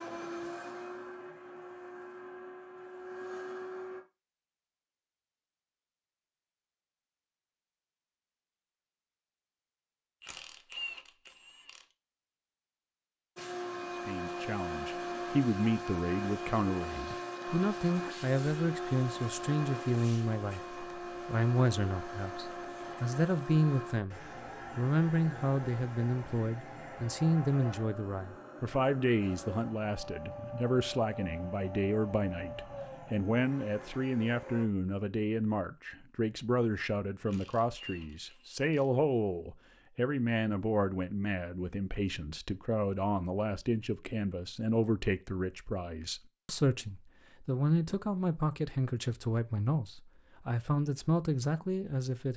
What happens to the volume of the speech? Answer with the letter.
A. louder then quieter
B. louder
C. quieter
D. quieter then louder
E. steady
E.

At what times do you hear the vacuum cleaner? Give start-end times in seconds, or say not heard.
0.0-4.0, 13.3-34.6.